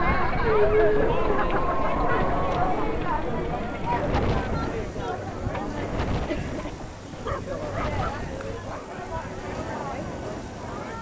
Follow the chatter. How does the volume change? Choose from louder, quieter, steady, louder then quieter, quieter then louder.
quieter.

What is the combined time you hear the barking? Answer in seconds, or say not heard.
3 s.